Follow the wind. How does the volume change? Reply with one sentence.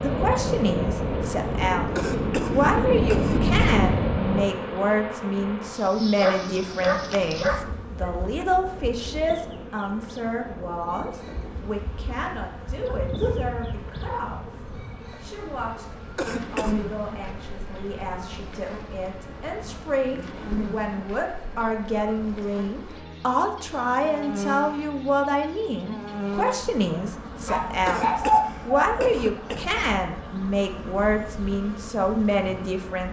The loudness of the wind goes down.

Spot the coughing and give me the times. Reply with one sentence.
The coughing can be heard from 1.9 to 3.8 s, from 16.1 to 16.8 s and from 27.9 to 29.9 s.